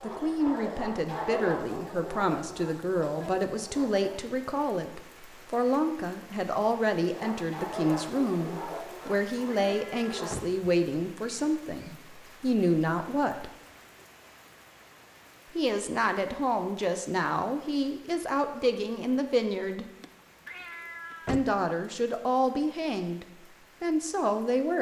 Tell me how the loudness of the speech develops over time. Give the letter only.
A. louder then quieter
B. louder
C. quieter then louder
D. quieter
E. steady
E.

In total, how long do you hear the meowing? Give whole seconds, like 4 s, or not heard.
3 s.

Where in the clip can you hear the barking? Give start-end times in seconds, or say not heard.
0.0-4.2, 7.1-10.3.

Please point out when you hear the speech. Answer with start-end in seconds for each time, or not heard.
0.0-13.5, 15.5-19.9, 21.2-24.7.